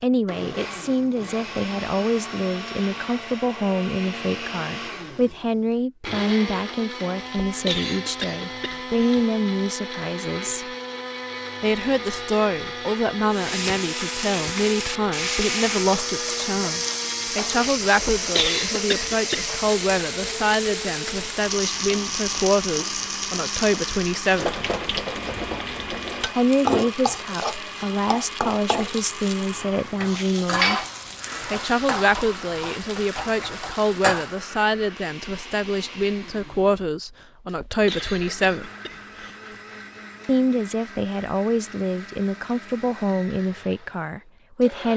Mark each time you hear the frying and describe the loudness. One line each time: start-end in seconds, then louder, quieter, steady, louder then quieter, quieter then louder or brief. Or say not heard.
13.3-34.4 steady.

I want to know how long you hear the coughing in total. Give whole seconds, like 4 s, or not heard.
5 s.